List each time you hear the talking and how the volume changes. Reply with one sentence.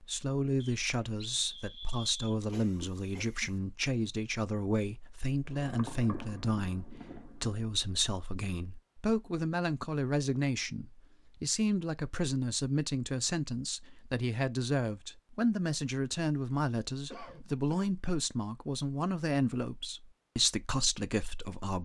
You can hear the talking from 0.0 to 21.8 s, at a steady volume.